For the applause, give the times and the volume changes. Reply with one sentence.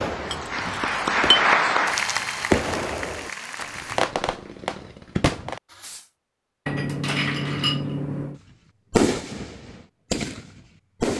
The applause can be heard from 0.0 to 4.0 s, getting louder then quieter.